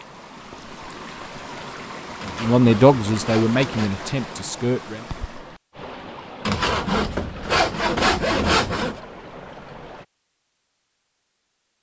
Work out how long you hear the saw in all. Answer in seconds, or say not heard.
4 s.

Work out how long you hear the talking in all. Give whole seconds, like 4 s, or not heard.
3 s.